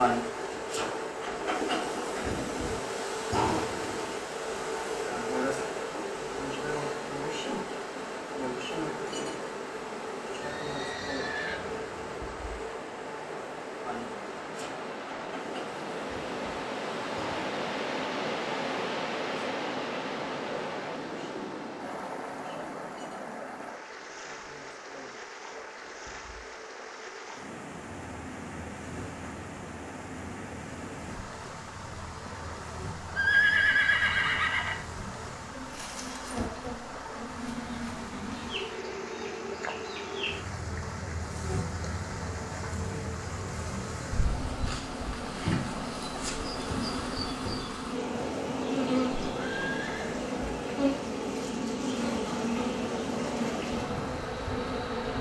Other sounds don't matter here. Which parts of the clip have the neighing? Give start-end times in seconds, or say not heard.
10.4-12.2, 33.1-34.9, 49.3-50.2.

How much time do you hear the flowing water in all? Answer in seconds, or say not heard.
55 s.